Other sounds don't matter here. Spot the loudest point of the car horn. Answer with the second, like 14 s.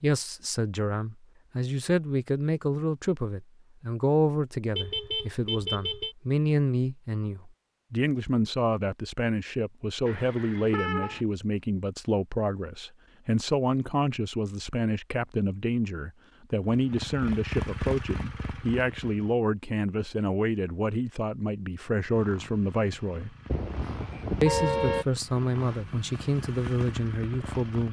25 s.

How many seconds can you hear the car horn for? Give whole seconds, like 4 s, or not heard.
4 s.